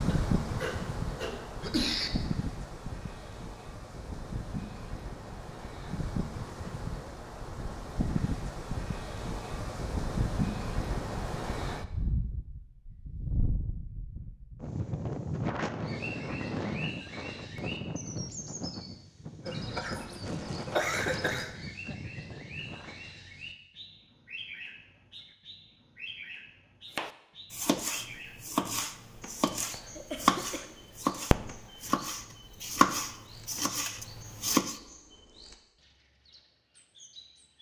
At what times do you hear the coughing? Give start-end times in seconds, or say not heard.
0.1-2.1, 19.4-21.5, 29.7-31.0.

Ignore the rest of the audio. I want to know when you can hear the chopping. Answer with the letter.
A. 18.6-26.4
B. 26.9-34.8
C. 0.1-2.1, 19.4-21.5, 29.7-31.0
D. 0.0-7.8
B.